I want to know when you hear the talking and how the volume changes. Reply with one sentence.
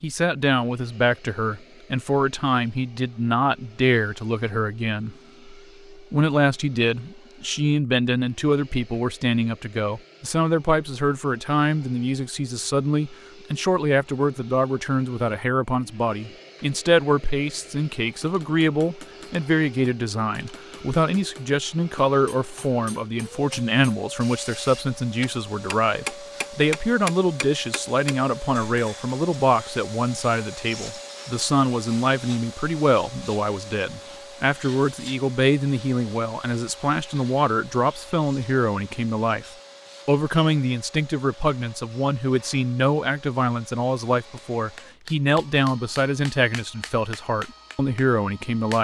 You can hear the talking from 0.0 to 48.7 s, at a steady volume.